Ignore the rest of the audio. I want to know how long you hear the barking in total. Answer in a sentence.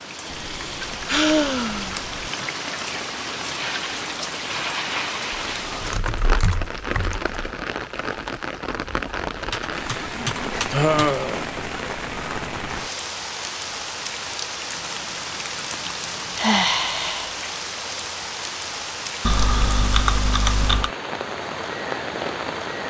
You can't hear the barking here.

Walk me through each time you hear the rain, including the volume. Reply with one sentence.
The rain can be heard from 0.0 to 22.8 s, at a steady volume.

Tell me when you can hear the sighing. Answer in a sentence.
The sighing can be heard from 0.1 to 2.5 s, from 10.7 to 11.5 s and from 16.4 to 17.4 s.